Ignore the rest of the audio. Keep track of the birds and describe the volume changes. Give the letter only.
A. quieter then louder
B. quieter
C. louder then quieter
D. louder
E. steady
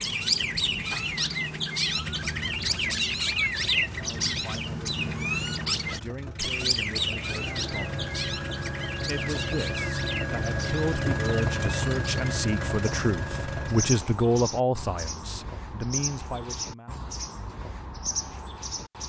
B.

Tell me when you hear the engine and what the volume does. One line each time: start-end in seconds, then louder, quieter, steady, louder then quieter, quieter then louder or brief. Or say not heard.
0.0-14.1 louder.